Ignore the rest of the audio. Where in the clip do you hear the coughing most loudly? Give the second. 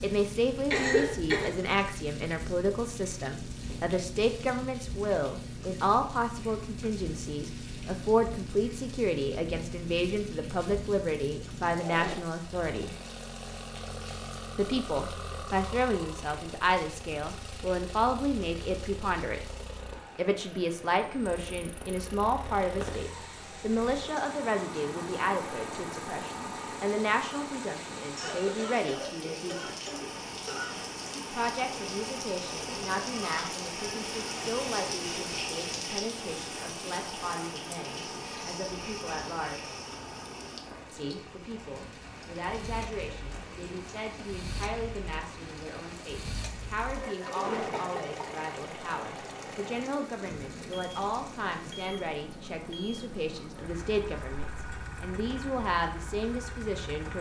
1 s.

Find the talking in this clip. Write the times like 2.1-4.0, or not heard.
0.0-12.9, 14.6-19.4, 20.1-29.8, 31.3-39.7, 40.9-57.1.